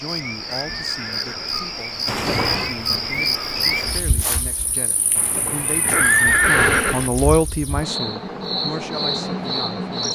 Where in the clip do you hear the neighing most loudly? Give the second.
6 s.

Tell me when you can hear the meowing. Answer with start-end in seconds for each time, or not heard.
2.0-2.8, 5.2-7.1.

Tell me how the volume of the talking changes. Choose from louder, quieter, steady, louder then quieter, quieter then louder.
louder then quieter.